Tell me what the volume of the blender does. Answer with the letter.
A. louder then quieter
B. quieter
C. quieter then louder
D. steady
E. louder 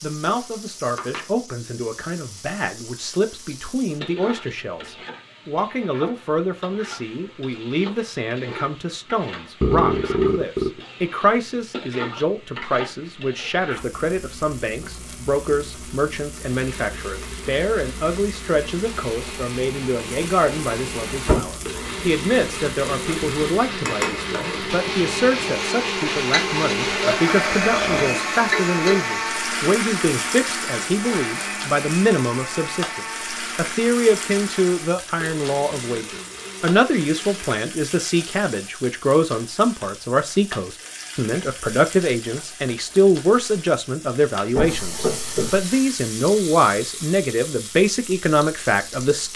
A.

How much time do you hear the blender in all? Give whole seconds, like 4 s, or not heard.
21 s.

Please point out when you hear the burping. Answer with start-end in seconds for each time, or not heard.
9.6-10.8, 27.0-28.2.